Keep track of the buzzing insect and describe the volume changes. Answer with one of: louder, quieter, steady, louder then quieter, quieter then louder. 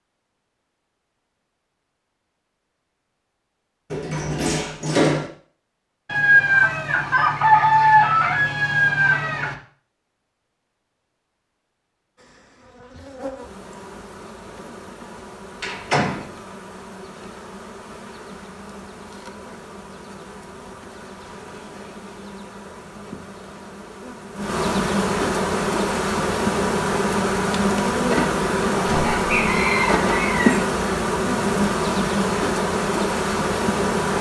louder.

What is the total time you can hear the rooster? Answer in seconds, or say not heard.
5 s.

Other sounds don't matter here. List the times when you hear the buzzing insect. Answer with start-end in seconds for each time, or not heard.
12.2-34.1.